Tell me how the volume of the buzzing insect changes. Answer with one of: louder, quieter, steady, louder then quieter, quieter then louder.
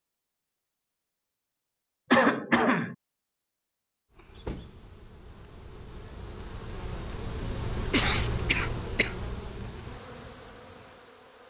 louder then quieter.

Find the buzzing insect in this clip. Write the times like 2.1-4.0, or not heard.
4.1-11.4.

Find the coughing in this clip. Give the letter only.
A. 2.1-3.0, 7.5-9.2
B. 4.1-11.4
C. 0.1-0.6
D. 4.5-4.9
A.